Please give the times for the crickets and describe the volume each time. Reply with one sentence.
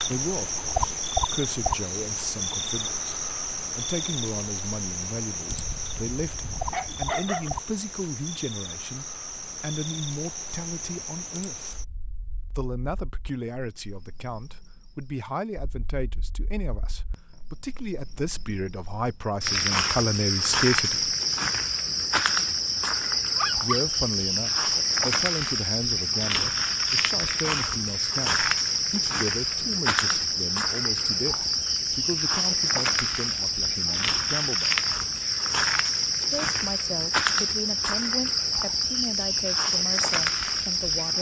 You can hear the crickets from 0.0 to 41.1 s, getting quieter then louder.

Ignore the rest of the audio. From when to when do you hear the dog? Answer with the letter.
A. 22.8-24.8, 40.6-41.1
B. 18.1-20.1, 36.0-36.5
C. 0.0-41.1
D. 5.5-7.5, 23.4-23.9
D.